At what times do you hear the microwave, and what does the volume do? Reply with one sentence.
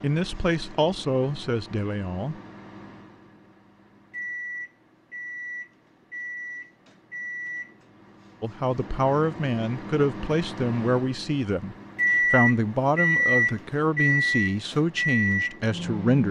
The microwave can be heard from 0.0 to 16.2 s, getting louder.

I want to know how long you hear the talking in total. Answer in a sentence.
You can hear the talking for 10 seconds altogether.